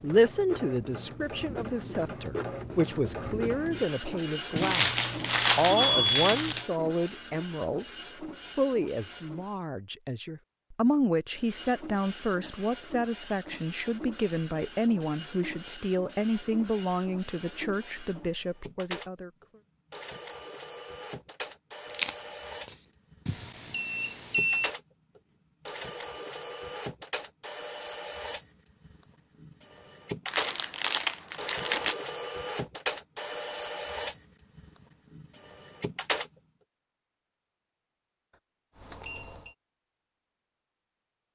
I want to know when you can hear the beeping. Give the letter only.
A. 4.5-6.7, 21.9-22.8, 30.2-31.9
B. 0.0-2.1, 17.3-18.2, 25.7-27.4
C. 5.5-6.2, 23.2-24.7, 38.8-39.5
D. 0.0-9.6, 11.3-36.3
C.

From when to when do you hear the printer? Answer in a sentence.
You can hear the printer from 0.0 to 9.6 s and from 11.3 to 36.3 s.